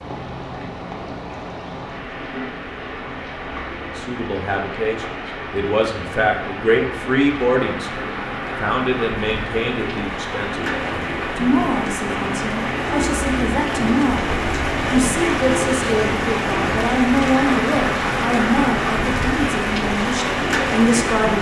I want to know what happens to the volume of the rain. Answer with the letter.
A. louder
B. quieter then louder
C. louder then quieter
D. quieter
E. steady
A.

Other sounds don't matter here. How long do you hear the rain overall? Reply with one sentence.
You can hear the rain for 21 seconds altogether.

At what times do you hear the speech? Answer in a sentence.
The speech can be heard from 3.8 to 21.3 s.